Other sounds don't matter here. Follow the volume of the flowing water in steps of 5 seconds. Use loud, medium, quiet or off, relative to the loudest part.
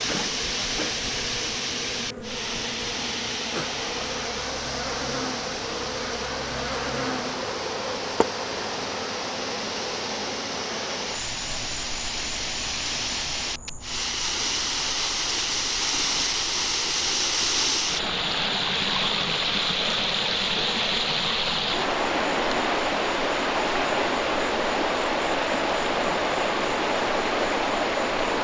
medium, medium, medium, loud, loud, loud.